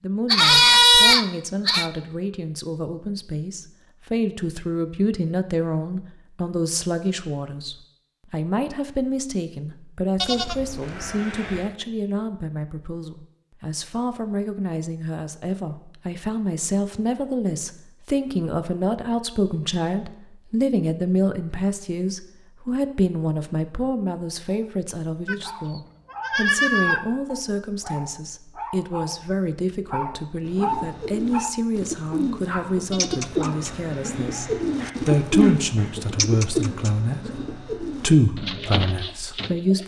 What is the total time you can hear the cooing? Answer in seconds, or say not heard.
9 s.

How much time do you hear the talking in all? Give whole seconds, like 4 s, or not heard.
40 s.